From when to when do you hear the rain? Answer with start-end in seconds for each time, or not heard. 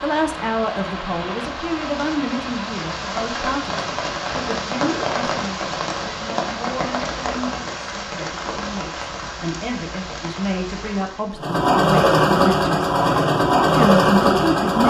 0.0-11.4.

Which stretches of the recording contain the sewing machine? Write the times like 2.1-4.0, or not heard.
11.3-14.8.